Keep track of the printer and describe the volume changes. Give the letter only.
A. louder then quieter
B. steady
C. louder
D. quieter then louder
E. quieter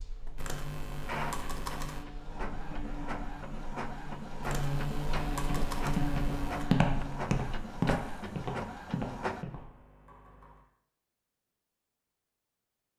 B.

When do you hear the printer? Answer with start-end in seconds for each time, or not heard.
0.0-9.4.